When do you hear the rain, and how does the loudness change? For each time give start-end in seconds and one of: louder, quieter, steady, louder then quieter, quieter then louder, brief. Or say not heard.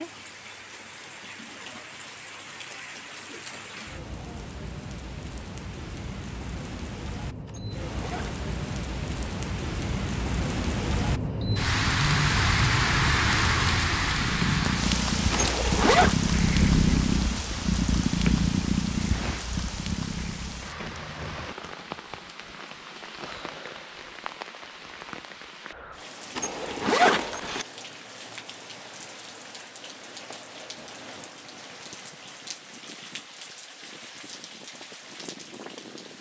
0.0-36.1 louder then quieter.